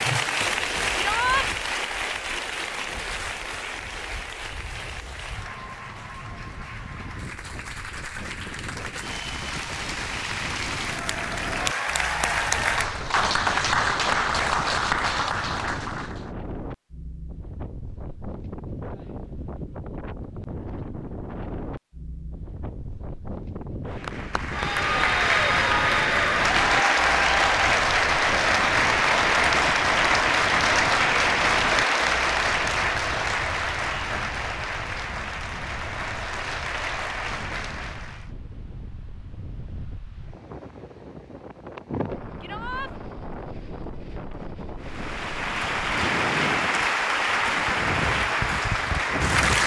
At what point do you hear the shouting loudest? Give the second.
1 s.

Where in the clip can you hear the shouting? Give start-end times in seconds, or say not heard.
0.9-1.4, 42.4-42.9.